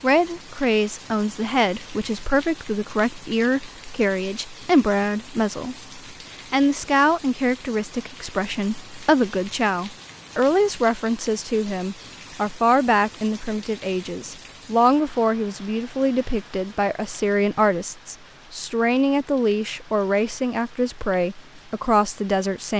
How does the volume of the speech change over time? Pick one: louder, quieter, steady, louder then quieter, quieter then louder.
steady.